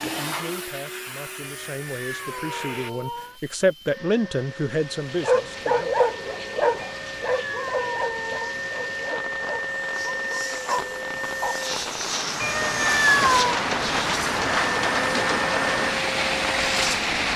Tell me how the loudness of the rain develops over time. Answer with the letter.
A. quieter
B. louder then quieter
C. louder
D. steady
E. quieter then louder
C.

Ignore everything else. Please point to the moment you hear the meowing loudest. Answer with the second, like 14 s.
13 s.